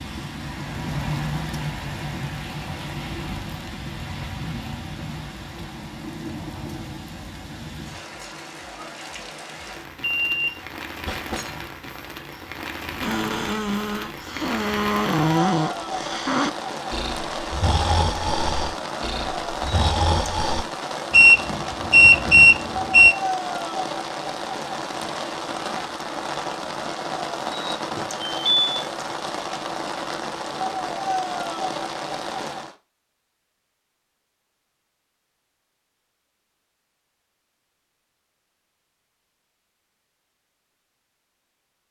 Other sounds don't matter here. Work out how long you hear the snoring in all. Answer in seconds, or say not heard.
8 s.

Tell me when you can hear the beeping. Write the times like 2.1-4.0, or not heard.
10.2-11.6, 21.1-23.1, 27.9-28.6.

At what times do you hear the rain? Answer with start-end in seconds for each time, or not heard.
0.0-32.8.